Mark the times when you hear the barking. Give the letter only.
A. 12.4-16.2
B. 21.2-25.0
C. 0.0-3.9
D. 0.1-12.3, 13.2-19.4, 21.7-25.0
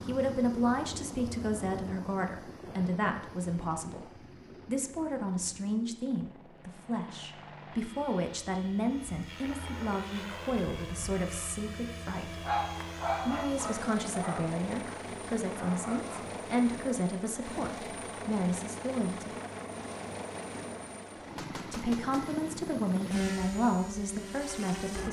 A.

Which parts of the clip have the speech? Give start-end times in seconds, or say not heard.
0.1-12.3, 13.2-19.4, 21.7-25.0.